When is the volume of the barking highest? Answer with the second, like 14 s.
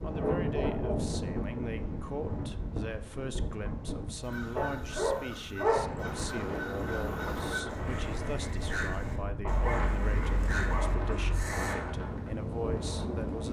6 s.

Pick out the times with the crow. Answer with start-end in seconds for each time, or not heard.
4.2-11.8.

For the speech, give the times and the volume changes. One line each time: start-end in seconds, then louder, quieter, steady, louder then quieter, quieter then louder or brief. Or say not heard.
0.0-13.4 steady.